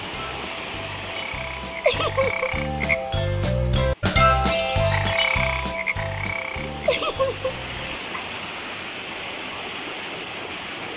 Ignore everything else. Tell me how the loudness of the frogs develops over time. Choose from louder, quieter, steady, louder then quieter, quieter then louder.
louder then quieter.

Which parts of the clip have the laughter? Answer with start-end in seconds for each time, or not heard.
1.9-2.5, 6.8-7.5.